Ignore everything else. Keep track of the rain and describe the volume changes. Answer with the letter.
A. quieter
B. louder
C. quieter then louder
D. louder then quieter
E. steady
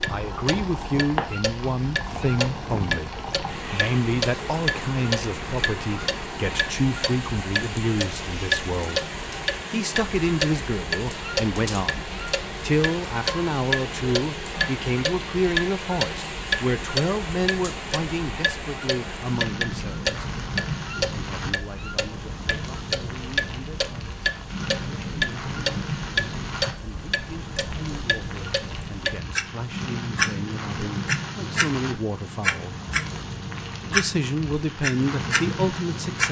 E.